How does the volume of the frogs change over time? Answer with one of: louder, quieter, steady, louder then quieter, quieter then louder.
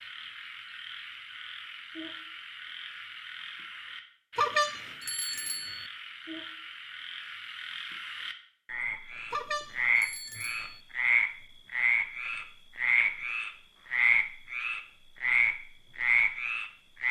louder.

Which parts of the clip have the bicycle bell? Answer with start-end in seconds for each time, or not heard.
4.3-5.8, 9.3-10.8.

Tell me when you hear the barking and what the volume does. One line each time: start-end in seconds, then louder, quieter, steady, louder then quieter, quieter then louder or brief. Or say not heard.
not heard.